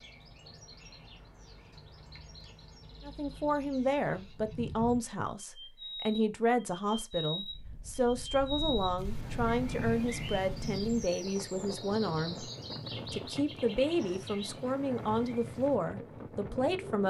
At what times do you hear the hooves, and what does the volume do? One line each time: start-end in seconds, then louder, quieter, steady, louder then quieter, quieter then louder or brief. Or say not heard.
not heard.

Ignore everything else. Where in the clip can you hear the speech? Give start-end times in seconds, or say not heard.
3.0-12.4, 13.1-17.0.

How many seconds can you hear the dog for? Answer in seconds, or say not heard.
not heard.